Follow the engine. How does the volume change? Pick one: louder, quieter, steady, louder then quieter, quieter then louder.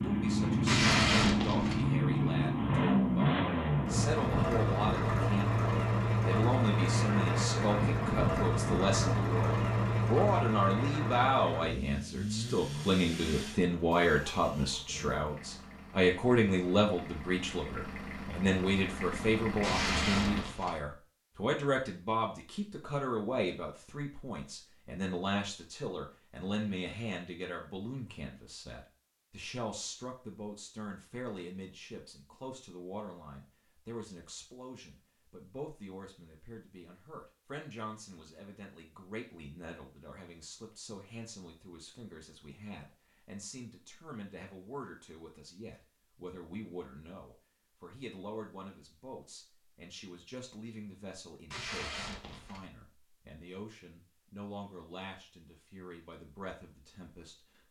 quieter.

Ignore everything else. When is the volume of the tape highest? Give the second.
1 s.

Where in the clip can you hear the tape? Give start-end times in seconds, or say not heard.
0.7-1.9, 19.6-20.8, 51.5-52.6.